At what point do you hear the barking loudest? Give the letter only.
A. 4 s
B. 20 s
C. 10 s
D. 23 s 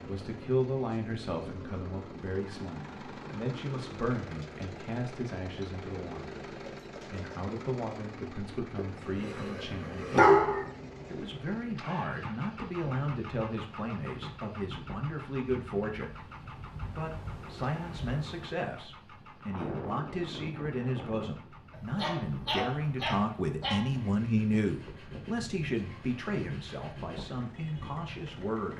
C.